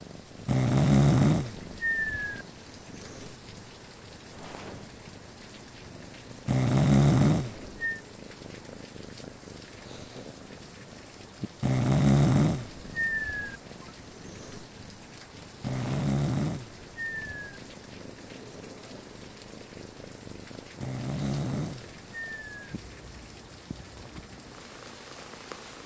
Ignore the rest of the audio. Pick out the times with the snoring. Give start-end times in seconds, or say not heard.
0.5-2.5, 6.5-8.0, 11.6-13.6, 15.6-17.6, 20.8-22.8.